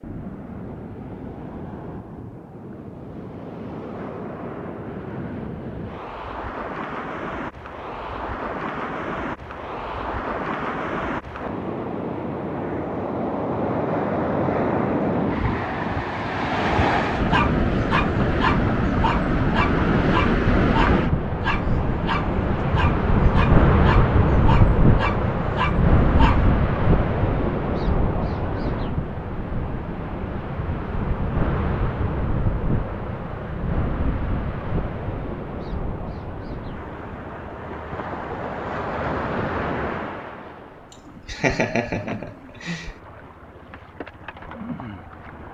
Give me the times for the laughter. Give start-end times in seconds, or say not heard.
40.9-42.9.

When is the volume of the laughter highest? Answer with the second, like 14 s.
42 s.